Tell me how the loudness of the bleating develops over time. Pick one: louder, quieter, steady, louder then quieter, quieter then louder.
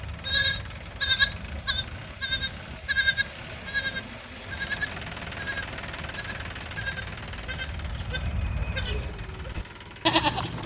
quieter then louder.